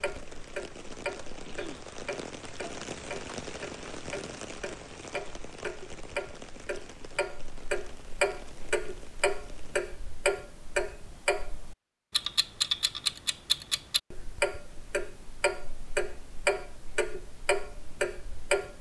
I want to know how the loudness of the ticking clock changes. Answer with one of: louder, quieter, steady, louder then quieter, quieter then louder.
louder.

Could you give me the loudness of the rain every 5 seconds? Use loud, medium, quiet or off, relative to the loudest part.
loud, medium, off, off.